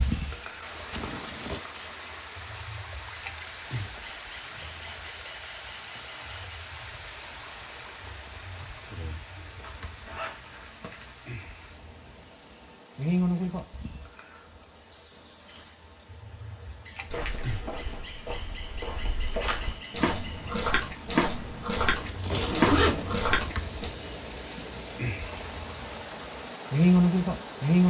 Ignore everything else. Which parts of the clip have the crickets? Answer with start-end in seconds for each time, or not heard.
0.0-27.8.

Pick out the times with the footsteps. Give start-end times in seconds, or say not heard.
17.1-23.9.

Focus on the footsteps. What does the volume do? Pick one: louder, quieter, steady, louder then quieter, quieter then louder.
louder.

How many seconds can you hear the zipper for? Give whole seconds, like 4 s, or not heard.
4 s.